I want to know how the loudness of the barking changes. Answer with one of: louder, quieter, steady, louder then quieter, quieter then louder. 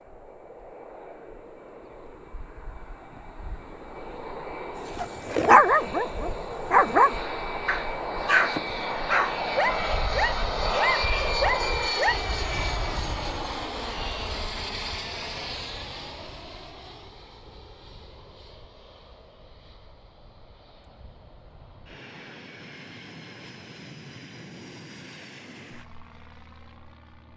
quieter.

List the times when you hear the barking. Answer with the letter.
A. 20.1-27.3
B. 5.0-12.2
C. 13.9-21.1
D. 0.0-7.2
B.